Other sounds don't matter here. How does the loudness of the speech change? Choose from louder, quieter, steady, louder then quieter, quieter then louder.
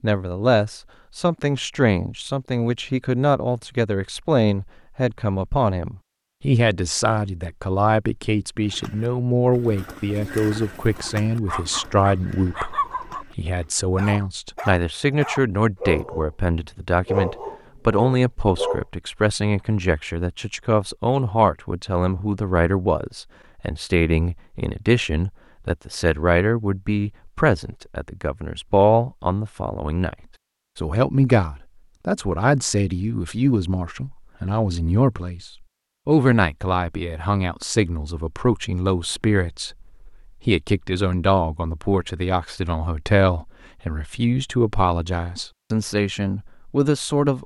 steady.